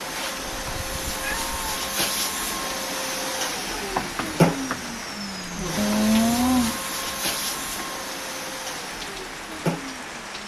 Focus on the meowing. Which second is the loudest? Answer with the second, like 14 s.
6 s.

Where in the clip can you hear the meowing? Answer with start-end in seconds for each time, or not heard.
0.5-1.8, 5.8-6.8.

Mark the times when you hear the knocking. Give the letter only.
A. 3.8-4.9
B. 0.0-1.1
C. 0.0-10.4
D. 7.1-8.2
A.